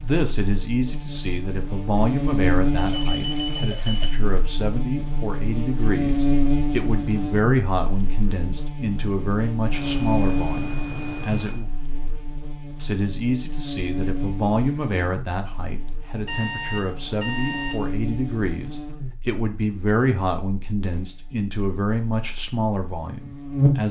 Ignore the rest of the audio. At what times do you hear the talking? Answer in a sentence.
You can hear the talking from 0.0 to 11.7 s and from 12.8 to 23.8 s.